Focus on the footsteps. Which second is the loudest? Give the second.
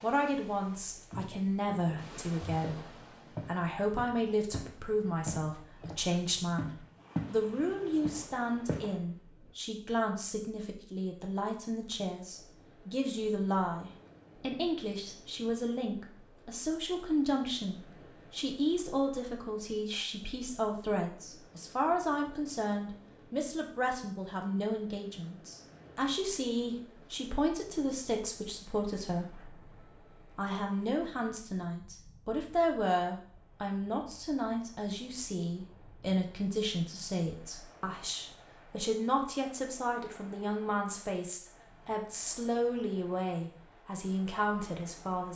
7 s.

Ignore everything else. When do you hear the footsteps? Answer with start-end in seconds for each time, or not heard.
0.0-7.4, 8.0-9.0.